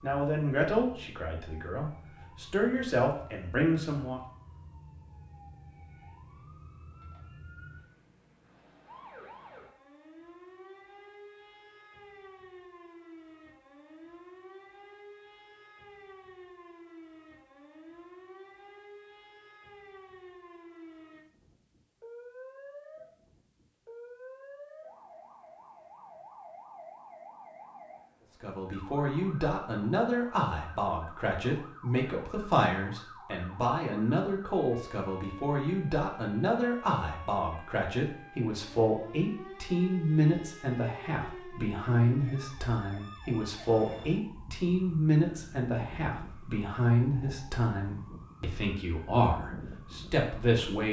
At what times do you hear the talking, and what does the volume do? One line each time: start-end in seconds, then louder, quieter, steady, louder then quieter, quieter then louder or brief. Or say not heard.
0.0-4.2 quieter then louder
28.4-50.8 steady.